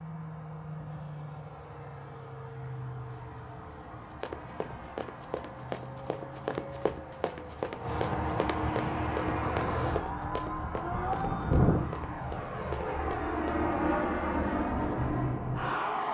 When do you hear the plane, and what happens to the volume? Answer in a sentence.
The plane can be heard from 0.0 to 16.0 s, getting louder.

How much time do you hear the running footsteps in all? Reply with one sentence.
You can hear the running footsteps for 10 seconds altogether.